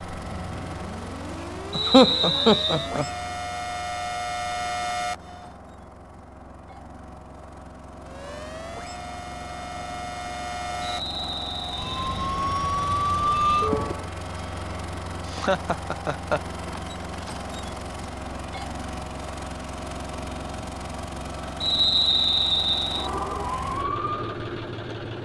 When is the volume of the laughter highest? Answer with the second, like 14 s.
2 s.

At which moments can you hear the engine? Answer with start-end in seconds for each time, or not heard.
0.0-25.2.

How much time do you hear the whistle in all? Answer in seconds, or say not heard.
4 s.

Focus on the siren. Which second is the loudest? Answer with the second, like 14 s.
13 s.